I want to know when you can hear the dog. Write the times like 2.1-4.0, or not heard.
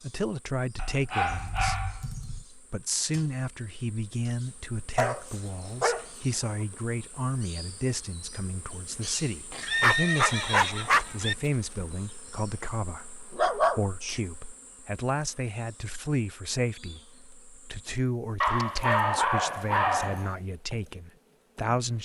0.8-2.5, 5.0-6.0, 9.5-11.2, 13.3-14.2, 18.4-20.4.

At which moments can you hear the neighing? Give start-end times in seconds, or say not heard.
9.7-11.3.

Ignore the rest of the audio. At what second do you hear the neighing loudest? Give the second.
10 s.